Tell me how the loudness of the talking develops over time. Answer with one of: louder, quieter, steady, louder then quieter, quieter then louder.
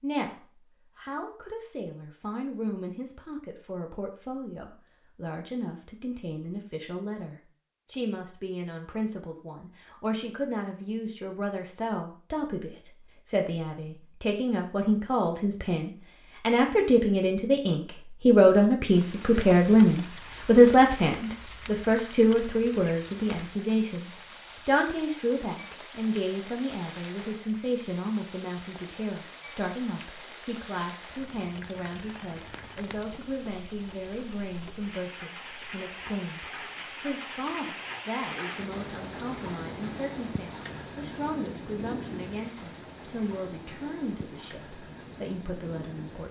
louder then quieter.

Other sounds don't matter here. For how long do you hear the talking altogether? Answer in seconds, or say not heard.
46 s.